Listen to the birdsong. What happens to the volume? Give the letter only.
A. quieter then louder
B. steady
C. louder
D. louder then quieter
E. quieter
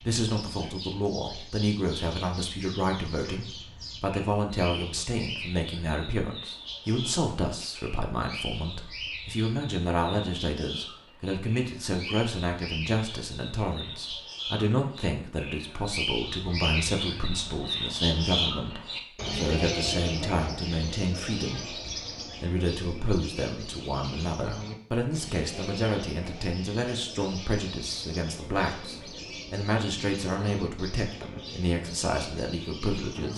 D.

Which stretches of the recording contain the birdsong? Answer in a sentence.
The birdsong can be heard from 0.0 to 33.3 s.